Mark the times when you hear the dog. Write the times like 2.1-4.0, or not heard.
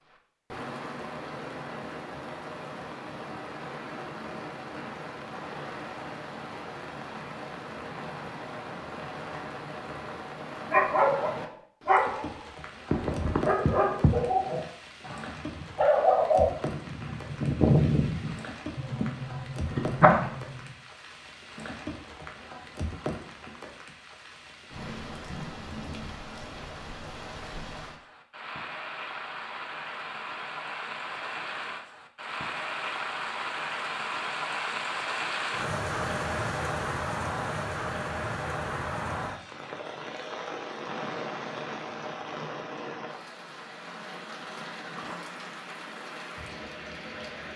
10.7-20.7.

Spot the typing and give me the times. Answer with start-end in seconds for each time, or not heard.
not heard.